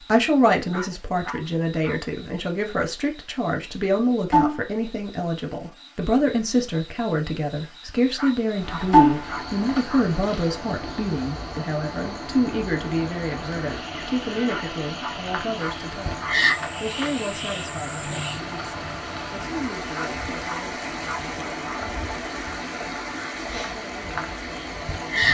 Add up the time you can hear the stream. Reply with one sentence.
The stream can be heard for 17 seconds in total.